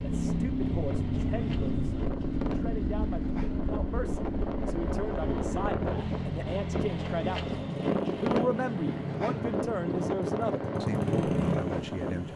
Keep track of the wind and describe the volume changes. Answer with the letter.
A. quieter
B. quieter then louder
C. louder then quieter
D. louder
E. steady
D.